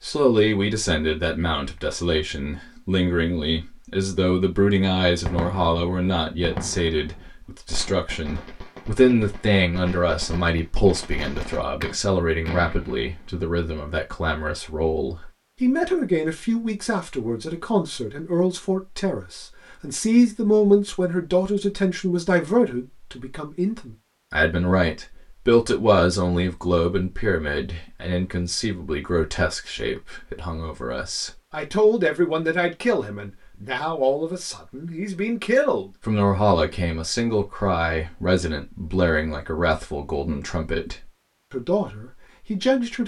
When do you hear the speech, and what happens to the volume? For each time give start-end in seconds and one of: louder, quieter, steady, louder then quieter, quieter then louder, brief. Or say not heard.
0.0-43.0 steady.